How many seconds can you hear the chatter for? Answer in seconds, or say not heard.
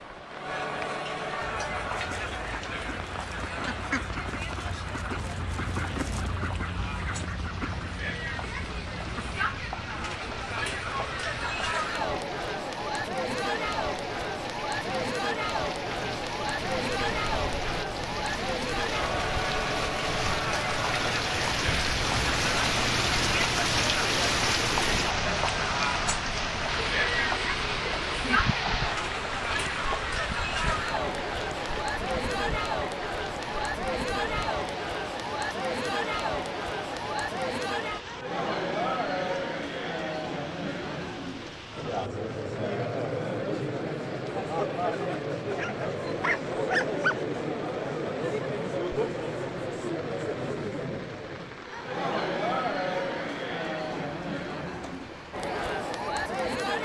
57 s.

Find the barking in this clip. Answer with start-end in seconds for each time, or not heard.
45.5-47.1.